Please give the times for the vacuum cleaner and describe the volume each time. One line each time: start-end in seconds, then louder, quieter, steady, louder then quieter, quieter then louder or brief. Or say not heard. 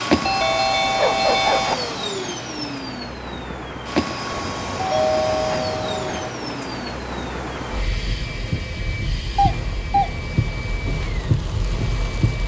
0.0-12.4 quieter.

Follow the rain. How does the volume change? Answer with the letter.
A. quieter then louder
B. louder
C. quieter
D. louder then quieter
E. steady
B.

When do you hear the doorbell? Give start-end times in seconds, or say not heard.
0.2-1.8, 4.3-6.3, 9.3-10.1.